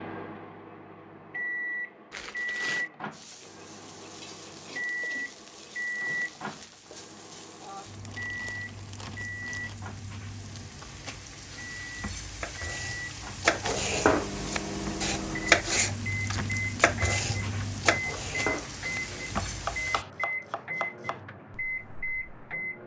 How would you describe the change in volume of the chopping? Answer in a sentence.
The volume of the chopping goes down.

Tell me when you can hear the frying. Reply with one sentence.
You can hear the frying from 3.1 to 20.1 s.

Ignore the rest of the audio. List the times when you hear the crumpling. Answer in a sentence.
The crumpling can be heard from 2.1 to 2.9 s, from 8.1 to 9.8 s and from 16.1 to 16.7 s.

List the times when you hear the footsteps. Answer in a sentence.
You can't hear the footsteps here.